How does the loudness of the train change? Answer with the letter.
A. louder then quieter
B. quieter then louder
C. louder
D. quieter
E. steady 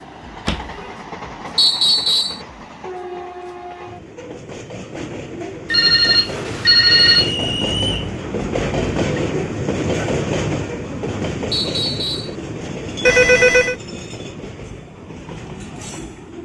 A.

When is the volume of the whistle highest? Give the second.
2 s.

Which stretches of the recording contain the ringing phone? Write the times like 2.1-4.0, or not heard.
0.5-0.9, 5.7-7.3, 13.1-13.8.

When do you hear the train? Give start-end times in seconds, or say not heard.
0.0-16.4.